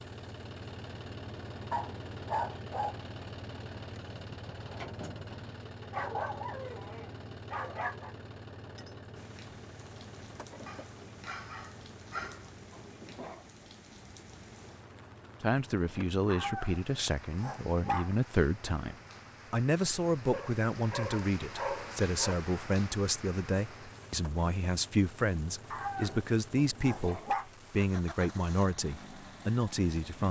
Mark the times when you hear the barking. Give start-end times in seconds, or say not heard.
1.7-3.0, 5.9-8.2, 10.7-12.5, 16.2-18.1, 20.3-22.4, 25.7-27.5.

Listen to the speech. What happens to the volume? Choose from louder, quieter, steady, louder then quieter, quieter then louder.
steady.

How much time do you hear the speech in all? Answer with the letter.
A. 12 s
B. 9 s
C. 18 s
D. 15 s
D.